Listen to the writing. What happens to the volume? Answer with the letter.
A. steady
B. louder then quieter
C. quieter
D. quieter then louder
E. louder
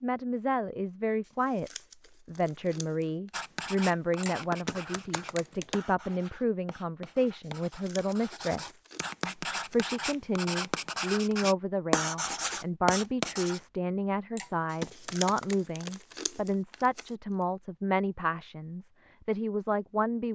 D.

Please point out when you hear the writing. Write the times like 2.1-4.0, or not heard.
3.3-13.6.